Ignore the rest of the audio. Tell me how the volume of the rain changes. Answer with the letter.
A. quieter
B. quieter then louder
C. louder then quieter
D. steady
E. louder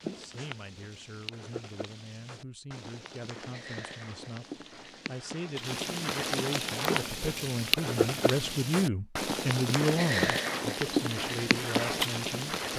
E.